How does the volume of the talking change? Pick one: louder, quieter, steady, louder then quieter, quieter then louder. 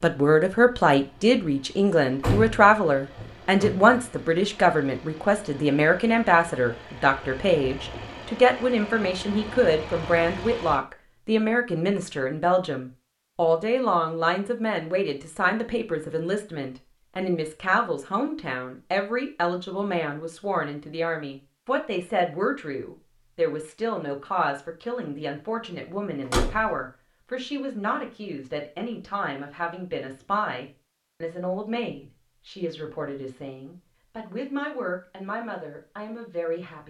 quieter.